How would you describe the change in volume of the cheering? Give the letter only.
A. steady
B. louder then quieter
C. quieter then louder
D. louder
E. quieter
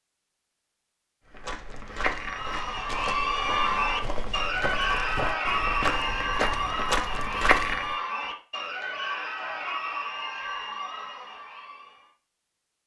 E.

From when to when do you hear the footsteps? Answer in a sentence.
You can hear the footsteps from 1.3 to 8.0 s.